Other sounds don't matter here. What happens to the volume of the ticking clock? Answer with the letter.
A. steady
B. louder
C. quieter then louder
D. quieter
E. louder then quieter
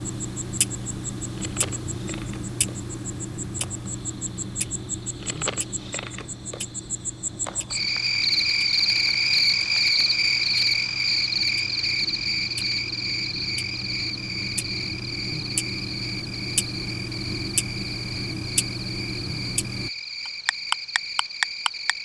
C.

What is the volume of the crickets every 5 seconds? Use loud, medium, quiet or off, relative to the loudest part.
quiet, loud, loud, medium, medium.